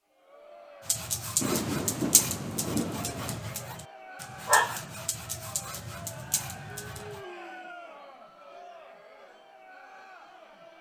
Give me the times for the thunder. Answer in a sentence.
You can hear the thunder from 1.4 to 3.4 s.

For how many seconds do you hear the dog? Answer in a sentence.
The dog can be heard for 6 seconds in total.